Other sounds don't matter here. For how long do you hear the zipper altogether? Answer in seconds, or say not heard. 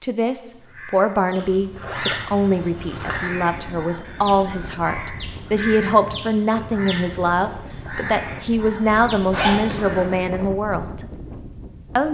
3 s.